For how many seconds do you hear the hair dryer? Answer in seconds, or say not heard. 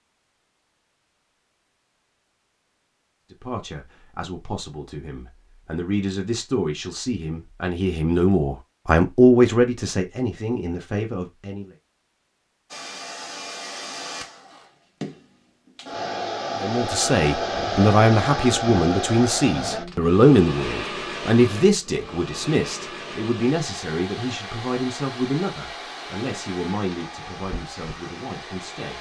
16 s.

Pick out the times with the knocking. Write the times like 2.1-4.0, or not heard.
not heard.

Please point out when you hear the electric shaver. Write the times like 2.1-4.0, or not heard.
not heard.